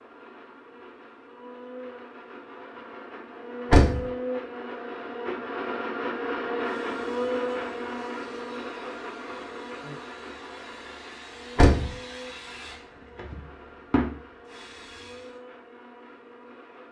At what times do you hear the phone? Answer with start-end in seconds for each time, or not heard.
not heard.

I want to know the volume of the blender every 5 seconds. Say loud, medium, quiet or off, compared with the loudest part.
medium, loud, quiet, quiet.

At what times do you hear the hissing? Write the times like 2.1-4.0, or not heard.
6.6-15.4.